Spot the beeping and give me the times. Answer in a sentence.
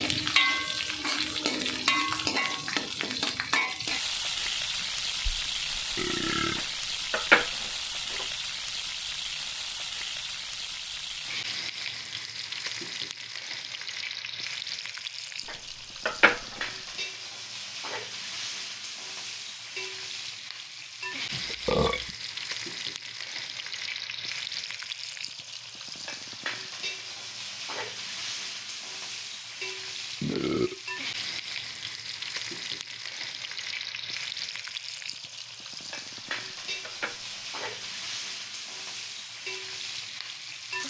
You can't hear the beeping here.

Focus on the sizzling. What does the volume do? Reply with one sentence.
The volume of the sizzling goes down.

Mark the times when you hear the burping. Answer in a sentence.
You can hear the burping from 4.3 to 6.7 s, from 21.3 to 22.1 s and from 30.2 to 30.8 s.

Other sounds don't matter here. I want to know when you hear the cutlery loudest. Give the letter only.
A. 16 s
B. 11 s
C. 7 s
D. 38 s
C.